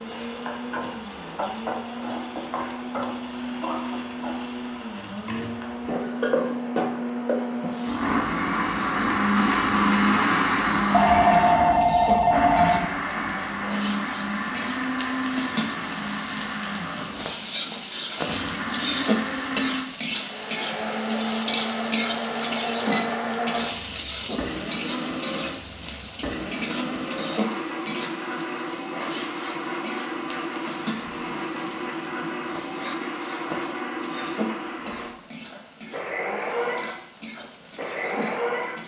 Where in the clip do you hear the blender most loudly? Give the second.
10 s.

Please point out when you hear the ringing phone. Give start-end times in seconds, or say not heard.
10.9-12.8.